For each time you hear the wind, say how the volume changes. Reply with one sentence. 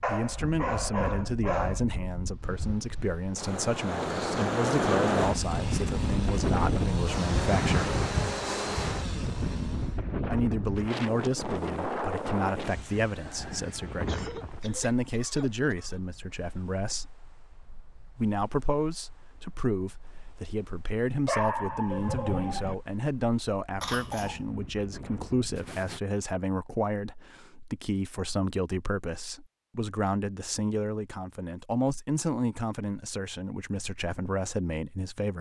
You can hear the wind from 0.0 to 26.0 s, getting quieter then louder.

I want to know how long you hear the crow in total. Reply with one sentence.
The crow can't be heard in this clip.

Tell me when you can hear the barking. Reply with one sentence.
You can hear the barking from 0.0 to 1.9 s and from 21.2 to 22.8 s.